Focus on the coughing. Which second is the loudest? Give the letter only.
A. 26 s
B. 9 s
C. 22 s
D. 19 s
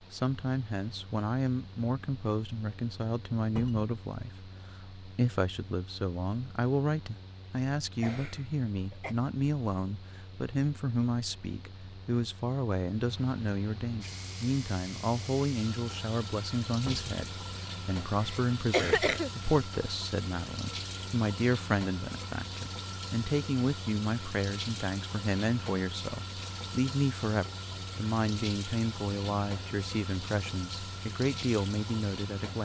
D.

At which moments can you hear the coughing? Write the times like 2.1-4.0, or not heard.
8.0-9.2, 18.2-19.3.